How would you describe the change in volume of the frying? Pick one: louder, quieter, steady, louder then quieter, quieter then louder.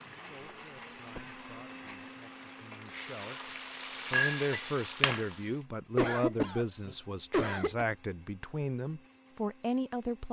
louder.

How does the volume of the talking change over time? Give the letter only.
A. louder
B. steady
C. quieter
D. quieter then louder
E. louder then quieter
A.